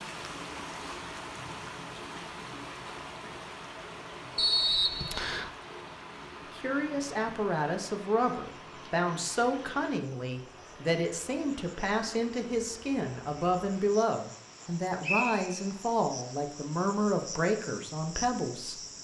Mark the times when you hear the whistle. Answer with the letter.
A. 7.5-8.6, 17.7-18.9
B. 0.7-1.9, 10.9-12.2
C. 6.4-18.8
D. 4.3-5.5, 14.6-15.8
D.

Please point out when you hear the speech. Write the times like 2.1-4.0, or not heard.
6.4-18.8.